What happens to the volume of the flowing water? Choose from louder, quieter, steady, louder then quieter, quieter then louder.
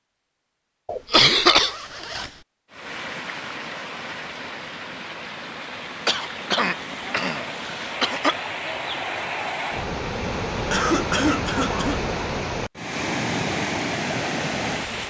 louder.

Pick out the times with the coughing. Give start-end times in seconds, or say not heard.
0.8-1.8, 6.0-8.3, 10.7-12.0.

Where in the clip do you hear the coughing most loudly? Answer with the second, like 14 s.
1 s.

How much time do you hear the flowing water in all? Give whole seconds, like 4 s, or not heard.
12 s.